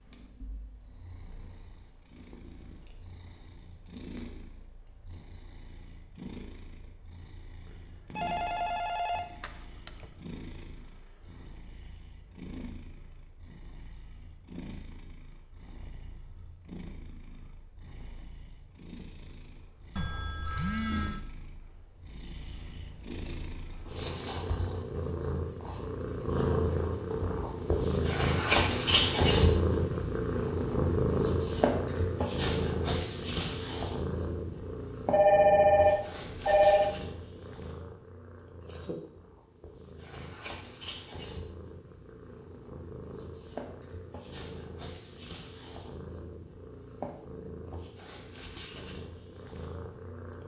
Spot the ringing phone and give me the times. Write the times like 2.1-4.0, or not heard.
8.2-10.1, 19.9-21.2, 35.1-37.0.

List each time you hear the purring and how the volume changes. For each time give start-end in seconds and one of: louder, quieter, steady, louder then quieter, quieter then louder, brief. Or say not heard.
0.0-50.4 louder then quieter.